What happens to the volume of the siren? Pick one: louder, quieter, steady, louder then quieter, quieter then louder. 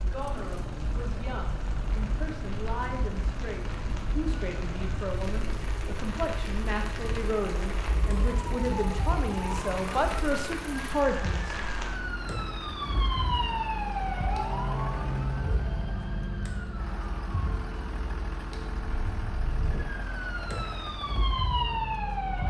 louder.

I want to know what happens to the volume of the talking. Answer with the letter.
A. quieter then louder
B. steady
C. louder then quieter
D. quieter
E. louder
E.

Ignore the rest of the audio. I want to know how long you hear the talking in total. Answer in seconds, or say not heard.
12 s.